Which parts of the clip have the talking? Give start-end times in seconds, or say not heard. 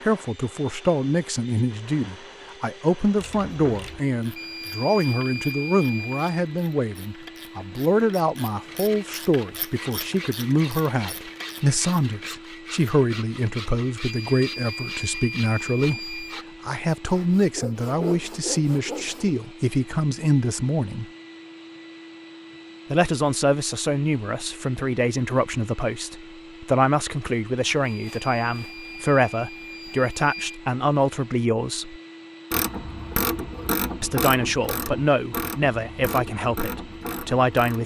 0.0-21.1, 22.9-32.0, 34.0-37.8.